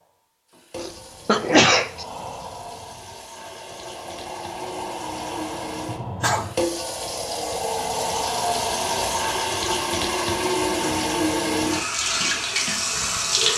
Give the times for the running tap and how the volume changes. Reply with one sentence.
The running tap can be heard from 0.0 to 13.5 s, getting louder.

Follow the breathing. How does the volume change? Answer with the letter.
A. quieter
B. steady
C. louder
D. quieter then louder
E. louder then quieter
C.